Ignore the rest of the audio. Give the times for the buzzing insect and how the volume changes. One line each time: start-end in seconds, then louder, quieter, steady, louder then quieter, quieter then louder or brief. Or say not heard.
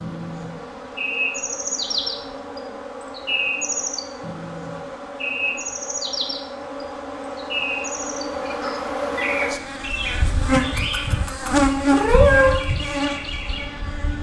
0.0-14.1 louder.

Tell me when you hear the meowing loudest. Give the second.
12 s.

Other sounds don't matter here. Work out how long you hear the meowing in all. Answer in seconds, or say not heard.
2 s.